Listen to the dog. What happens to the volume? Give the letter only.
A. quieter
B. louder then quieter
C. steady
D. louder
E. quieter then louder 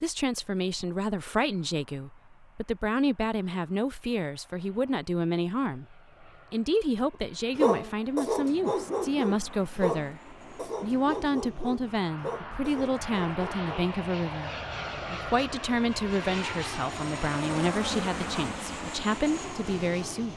A.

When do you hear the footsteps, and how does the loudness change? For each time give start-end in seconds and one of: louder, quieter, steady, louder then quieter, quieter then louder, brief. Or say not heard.
not heard.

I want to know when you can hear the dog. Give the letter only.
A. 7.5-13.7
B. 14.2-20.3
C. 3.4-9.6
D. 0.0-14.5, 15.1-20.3
A.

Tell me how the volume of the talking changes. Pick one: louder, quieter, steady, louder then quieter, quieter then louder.
steady.